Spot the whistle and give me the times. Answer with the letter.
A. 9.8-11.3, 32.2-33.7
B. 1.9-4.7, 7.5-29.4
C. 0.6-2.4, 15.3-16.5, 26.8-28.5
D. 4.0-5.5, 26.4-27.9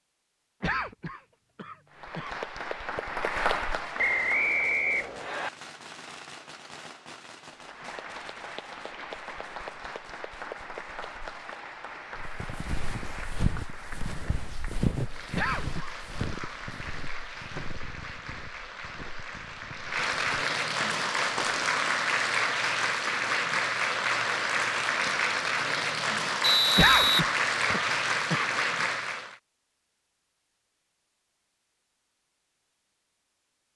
D.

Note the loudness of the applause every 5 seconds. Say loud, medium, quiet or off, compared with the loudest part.
medium, quiet, quiet, quiet, loud, loud, off.